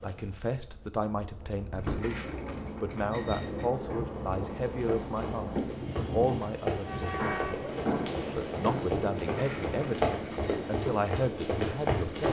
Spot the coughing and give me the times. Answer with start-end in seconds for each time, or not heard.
7.2-8.9.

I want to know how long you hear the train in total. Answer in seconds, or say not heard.
12 s.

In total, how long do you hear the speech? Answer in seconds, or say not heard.
11 s.